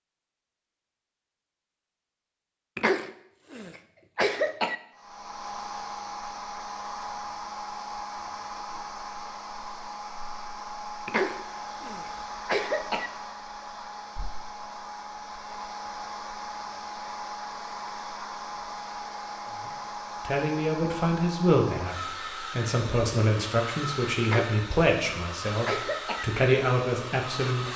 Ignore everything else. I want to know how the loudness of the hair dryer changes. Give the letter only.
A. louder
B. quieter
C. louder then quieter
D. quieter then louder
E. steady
E.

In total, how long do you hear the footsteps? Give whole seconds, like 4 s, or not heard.
not heard.